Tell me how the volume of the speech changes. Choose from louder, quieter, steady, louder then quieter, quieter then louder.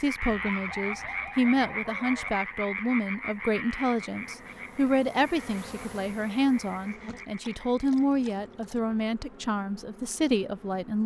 steady.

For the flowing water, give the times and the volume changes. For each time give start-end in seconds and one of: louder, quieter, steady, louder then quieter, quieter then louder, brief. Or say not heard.
not heard.